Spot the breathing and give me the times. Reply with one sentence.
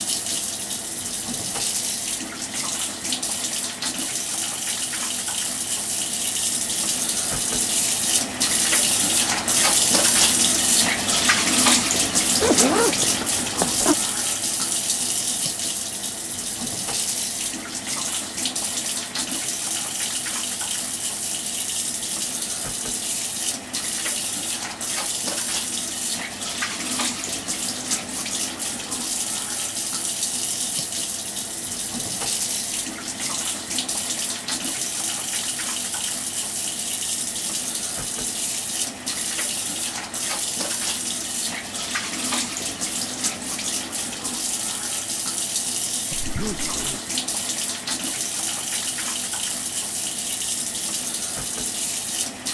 The breathing can't be heard in this clip.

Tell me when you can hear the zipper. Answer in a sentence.
You can hear the zipper from 12.4 to 13.9 s and from 46.1 to 47.0 s.